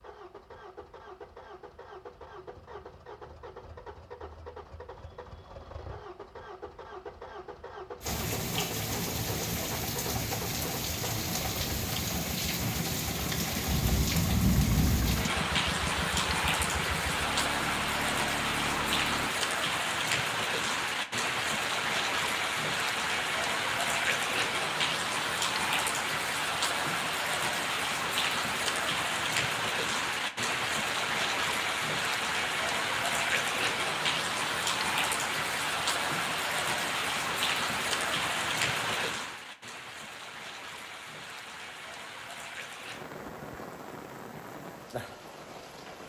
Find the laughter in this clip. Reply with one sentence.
The laughter can't be heard in this clip.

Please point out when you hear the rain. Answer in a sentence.
The rain can be heard from 8.0 to 46.0 s.